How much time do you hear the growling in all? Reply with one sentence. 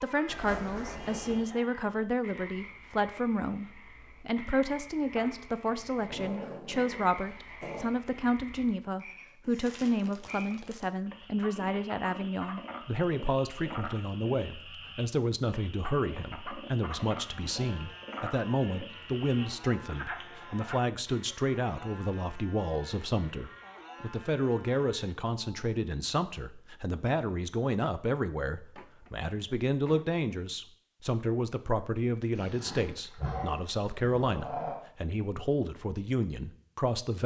The growling can be heard for 5 seconds in total.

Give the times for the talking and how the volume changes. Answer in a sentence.
You can hear the talking from 0.0 to 37.2 s, at a steady volume.